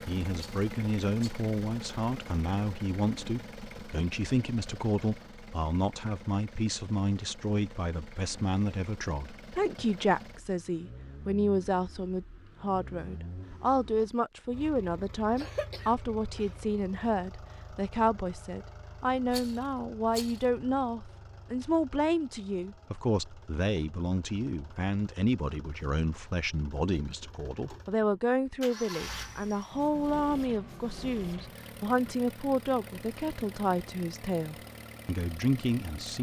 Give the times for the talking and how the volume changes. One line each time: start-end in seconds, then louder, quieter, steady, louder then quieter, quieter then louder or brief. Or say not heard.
0.0-36.1 steady.